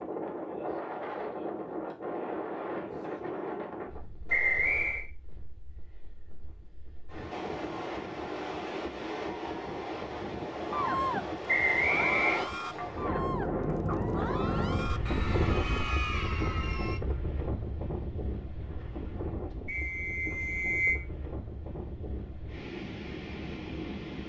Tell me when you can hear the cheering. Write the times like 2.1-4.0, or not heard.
10.7-17.0.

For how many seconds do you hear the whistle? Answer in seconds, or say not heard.
3 s.